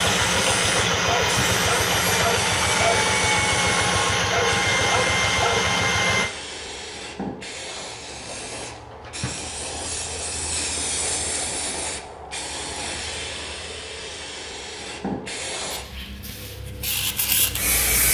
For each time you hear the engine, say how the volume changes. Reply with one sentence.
The engine can be heard from 0.0 to 6.3 s, at a steady volume.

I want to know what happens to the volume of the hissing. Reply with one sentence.
The loudness of the hissing stays about the same.